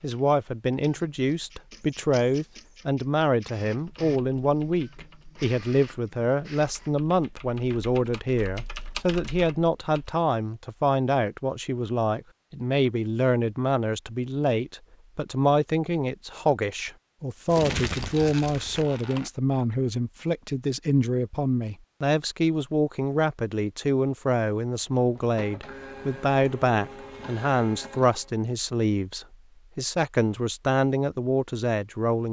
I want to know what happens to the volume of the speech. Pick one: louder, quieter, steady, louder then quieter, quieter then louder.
steady.